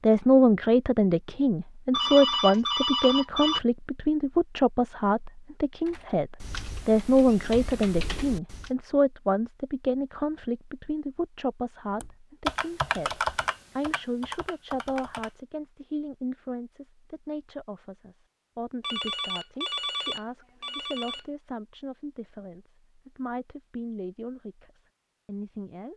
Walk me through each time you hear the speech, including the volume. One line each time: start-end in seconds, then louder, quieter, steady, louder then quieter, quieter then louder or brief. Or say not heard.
0.0-25.9 quieter.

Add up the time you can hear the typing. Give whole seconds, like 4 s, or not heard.
6 s.